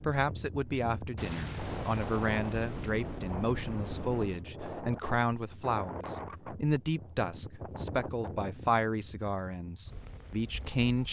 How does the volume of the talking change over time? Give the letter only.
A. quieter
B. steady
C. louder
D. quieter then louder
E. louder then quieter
B.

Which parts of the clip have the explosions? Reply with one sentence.
You can hear the explosions from 1.1 to 4.5 s.